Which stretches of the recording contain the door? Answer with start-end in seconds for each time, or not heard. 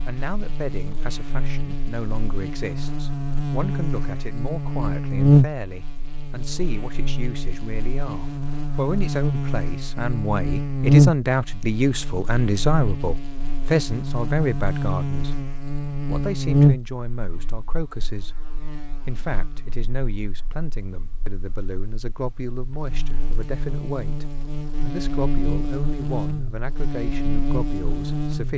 not heard.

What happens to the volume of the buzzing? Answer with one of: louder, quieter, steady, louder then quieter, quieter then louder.
quieter then louder.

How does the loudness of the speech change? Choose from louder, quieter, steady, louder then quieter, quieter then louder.
louder then quieter.